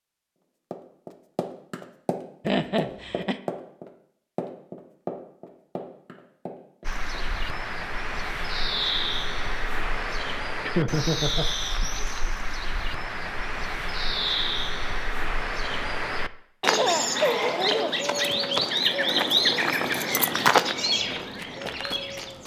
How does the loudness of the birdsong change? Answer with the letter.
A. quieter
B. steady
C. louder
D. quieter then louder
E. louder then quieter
C.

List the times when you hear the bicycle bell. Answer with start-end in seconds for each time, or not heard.
not heard.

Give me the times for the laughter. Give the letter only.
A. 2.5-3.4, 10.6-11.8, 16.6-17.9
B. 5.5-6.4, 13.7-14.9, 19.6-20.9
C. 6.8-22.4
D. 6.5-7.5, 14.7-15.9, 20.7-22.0
A.